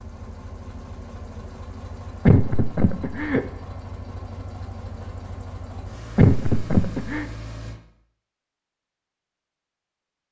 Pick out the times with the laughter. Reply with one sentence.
You can hear the laughter from 2.2 to 3.4 s and from 6.2 to 7.2 s.